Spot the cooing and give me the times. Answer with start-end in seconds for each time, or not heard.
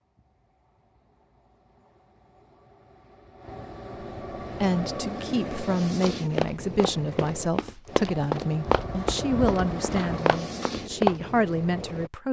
not heard.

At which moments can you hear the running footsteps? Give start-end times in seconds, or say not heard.
6.0-11.2.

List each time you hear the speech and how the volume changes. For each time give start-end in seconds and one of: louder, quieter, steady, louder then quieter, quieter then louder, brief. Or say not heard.
4.6-12.2 steady.